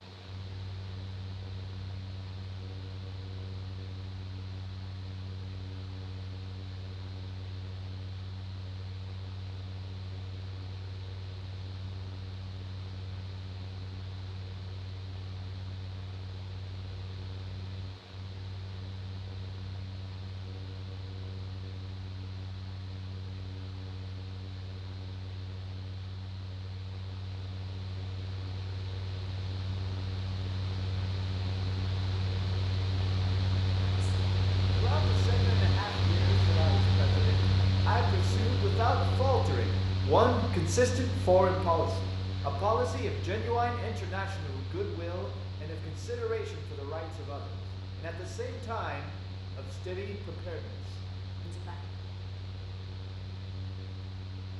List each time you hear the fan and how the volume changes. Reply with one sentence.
You can hear the fan from 0.0 to 54.5 s, getting louder then quieter.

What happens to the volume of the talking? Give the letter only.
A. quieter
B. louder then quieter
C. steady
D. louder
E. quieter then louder
B.